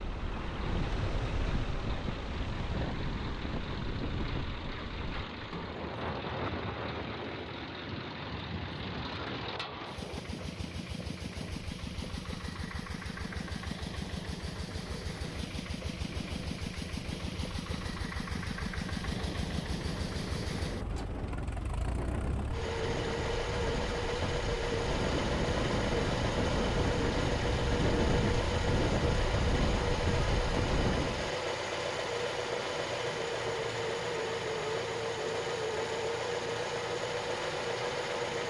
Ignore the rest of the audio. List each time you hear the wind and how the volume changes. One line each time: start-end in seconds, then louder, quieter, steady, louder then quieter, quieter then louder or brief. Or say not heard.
0.0-31.4 quieter then louder.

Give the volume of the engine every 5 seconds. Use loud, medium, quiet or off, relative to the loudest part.
medium, medium, medium, medium, loud, loud, loud, loud.